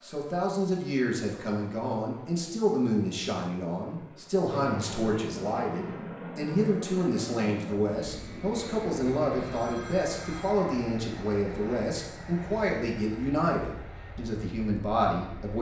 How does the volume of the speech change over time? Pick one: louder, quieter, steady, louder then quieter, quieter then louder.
steady.